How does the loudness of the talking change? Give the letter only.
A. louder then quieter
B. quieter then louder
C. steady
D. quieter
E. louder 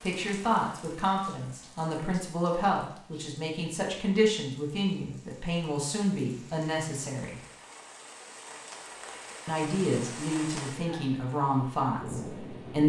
C.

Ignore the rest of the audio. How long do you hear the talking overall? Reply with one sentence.
You can hear the talking for 11 seconds altogether.